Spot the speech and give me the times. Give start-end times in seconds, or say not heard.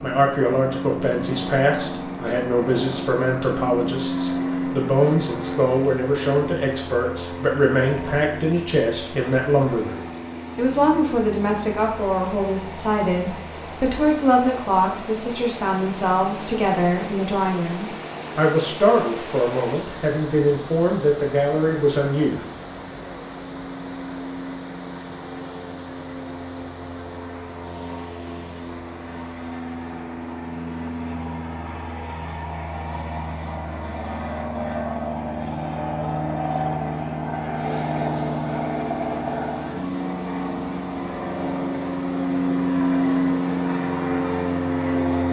0.0-22.4.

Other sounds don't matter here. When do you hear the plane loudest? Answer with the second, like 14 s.
43 s.